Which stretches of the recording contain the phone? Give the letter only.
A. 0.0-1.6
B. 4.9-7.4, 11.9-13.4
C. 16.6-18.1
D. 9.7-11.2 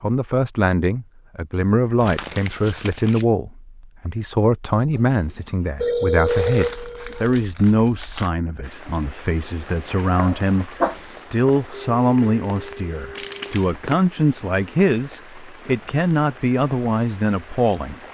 B.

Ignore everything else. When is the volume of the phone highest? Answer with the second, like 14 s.
6 s.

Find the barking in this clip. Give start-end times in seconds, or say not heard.
9.7-11.2.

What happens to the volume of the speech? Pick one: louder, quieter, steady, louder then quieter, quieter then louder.
steady.